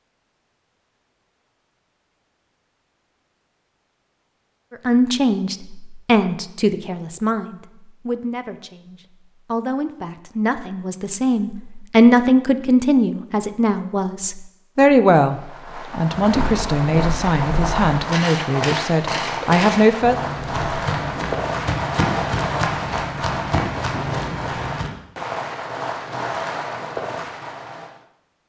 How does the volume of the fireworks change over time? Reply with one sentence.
The loudness of the fireworks stays about the same.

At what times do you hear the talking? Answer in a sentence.
You can hear the talking from 4.7 to 20.2 s.